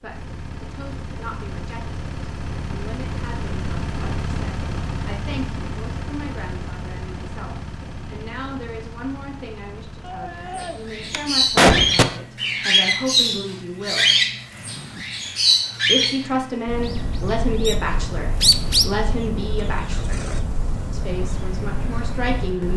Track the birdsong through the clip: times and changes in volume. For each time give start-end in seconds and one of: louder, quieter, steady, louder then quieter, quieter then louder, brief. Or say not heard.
10.6-22.7 quieter.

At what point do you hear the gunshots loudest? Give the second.
12 s.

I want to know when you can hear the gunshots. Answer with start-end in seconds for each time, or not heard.
10.1-12.1.